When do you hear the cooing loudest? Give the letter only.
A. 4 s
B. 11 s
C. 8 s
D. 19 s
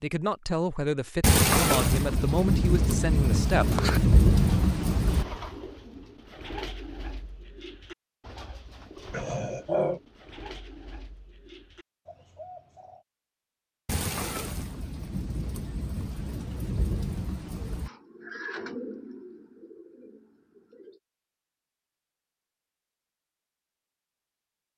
A.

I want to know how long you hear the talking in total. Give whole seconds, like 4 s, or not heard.
4 s.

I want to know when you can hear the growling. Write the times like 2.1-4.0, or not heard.
9.1-10.0.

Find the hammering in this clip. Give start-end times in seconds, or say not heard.
not heard.